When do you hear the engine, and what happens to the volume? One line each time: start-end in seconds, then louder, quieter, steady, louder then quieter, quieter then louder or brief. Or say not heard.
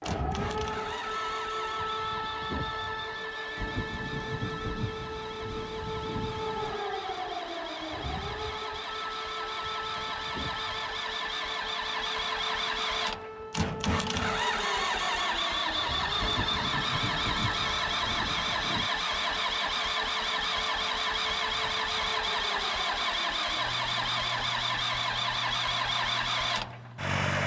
0.0-27.4 louder.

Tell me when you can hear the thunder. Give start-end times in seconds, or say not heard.
3.5-6.8, 16.1-18.9.